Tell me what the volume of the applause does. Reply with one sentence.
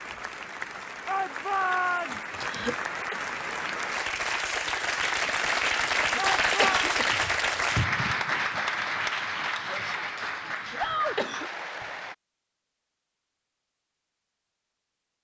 The volume of the applause goes up, then down.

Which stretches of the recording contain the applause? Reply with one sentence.
You can hear the applause from 0.0 to 12.2 s.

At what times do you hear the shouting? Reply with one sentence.
The shouting can be heard from 1.1 to 2.2 s, from 6.2 to 6.9 s and from 10.8 to 11.2 s.